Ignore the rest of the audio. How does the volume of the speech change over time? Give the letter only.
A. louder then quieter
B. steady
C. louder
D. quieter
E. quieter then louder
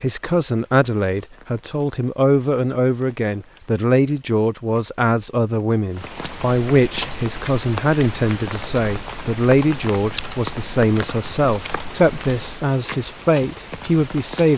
B.